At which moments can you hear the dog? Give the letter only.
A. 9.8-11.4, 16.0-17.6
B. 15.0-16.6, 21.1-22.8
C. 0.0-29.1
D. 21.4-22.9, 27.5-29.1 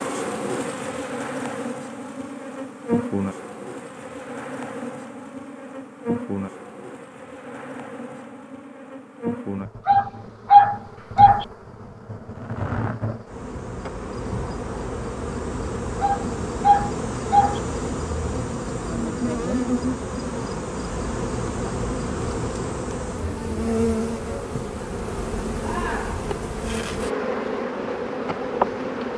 A.